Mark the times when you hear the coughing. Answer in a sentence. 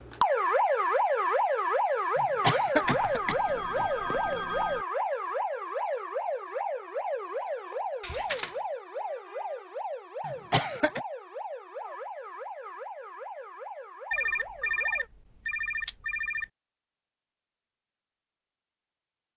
The coughing can be heard from 2.1 to 3.4 s and from 10.2 to 11.0 s.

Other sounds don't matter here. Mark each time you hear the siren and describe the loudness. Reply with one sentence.
You can hear the siren from 0.0 to 15.1 s, getting quieter.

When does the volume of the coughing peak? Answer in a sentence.
The volume of the coughing peaks at 3 seconds.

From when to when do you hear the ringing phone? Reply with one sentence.
The ringing phone can be heard from 2.8 to 4.8 s, from 8.0 to 8.6 s and from 14.1 to 16.5 s.